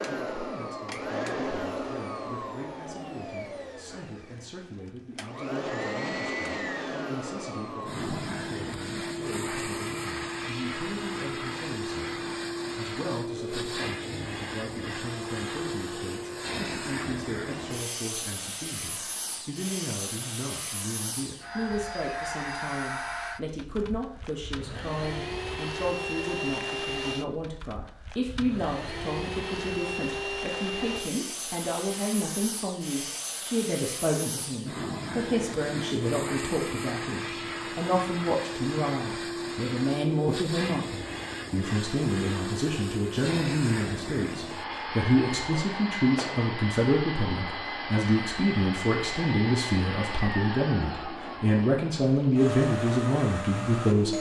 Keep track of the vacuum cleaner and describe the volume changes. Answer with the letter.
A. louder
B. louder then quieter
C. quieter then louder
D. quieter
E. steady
E.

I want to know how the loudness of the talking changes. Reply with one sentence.
The loudness of the talking goes up.